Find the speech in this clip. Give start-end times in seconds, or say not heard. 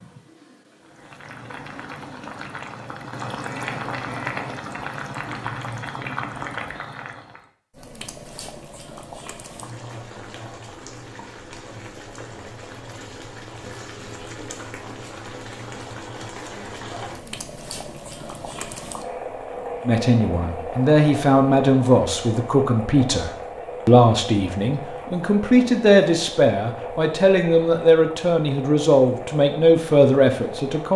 19.9-30.9.